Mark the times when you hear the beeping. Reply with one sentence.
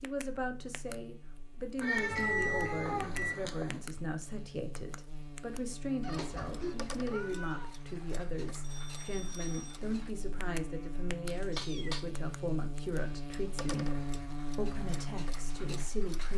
You can hear the beeping from 2.0 to 3.4 s and from 8.6 to 9.8 s.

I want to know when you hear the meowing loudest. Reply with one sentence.
The volume of the meowing peaks at 2 seconds.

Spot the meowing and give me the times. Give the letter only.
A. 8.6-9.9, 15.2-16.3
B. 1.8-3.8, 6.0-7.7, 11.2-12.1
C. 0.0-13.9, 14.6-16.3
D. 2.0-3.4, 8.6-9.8
B.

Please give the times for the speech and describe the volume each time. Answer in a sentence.
You can hear the speech from 0.0 to 13.9 s, at a steady volume; and briefly from 14.6 to 16.3 s.